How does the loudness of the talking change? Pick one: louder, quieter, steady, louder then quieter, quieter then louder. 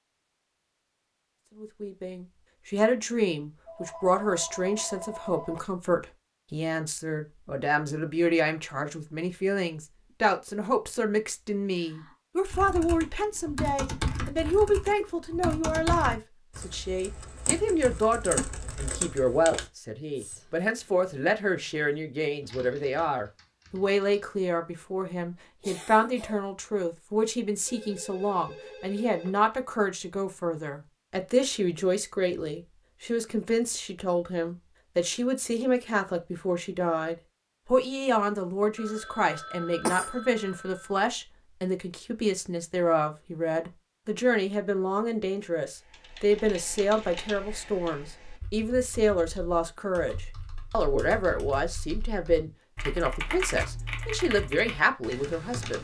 steady.